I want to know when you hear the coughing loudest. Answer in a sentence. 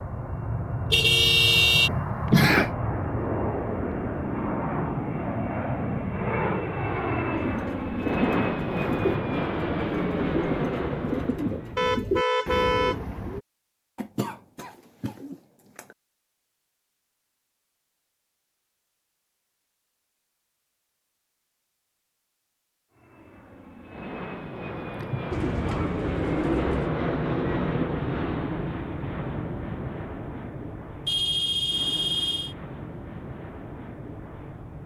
The volume of the coughing peaks at 2 seconds.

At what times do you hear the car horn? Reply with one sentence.
You can hear the car horn from 0.9 to 1.9 s, from 11.8 to 12.9 s and from 31.1 to 32.5 s.